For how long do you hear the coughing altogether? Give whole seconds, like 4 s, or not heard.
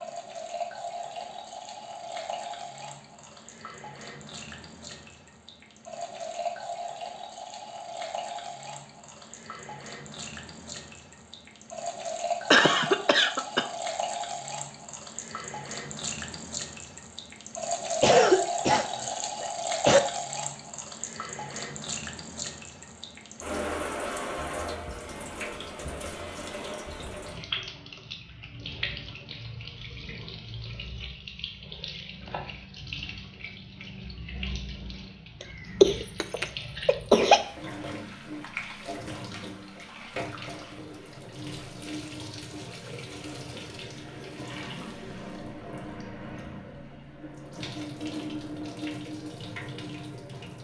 5 s.